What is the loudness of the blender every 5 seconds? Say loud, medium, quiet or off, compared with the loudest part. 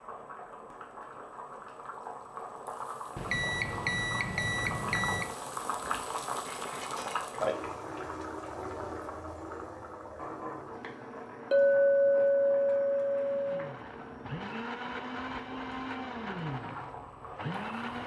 off, off, loud, loud.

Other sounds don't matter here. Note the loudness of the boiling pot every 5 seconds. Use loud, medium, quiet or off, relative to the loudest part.
medium, loud, medium, medium.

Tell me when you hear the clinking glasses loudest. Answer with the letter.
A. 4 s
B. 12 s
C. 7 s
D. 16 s
B.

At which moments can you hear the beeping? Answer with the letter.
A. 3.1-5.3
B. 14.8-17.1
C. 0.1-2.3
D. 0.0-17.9
A.